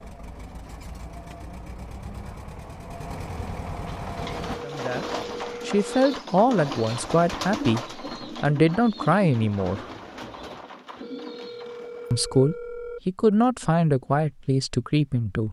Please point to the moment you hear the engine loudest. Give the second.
4 s.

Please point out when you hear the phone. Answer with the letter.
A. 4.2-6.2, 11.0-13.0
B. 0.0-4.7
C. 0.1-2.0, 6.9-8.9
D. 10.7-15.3
A.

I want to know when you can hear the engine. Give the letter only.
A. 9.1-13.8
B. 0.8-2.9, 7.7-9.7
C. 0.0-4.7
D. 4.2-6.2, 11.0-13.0
C.